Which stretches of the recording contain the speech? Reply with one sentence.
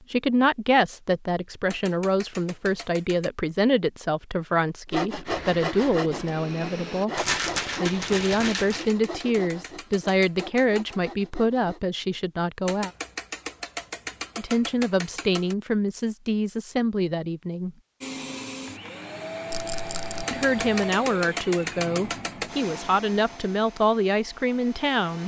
You can hear the speech from 0.1 to 7.1 s, from 7.8 to 12.9 s, from 14.3 to 17.8 s and from 20.3 to 25.2 s.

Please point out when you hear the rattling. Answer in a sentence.
You can hear the rattling from 7.2 to 8.9 s and from 19.5 to 20.2 s.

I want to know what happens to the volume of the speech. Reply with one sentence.
The loudness of the speech stays about the same.